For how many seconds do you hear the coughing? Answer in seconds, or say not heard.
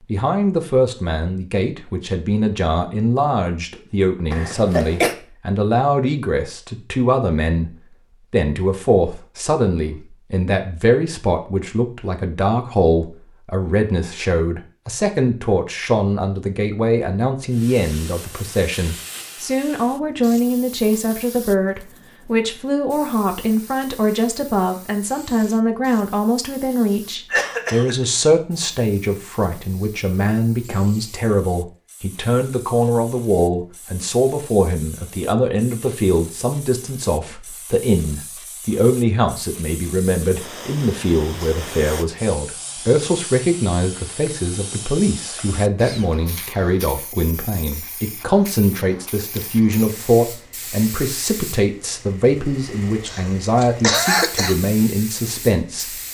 3 s.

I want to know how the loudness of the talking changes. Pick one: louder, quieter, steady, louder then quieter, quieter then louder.
steady.